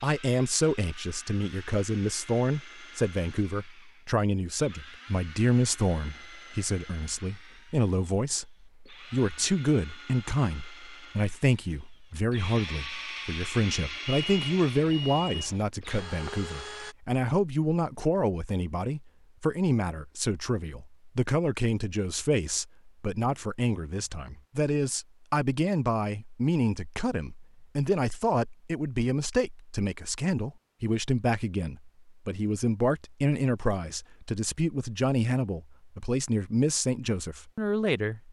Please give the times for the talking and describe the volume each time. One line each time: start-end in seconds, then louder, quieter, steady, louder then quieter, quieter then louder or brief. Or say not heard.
0.0-38.2 steady.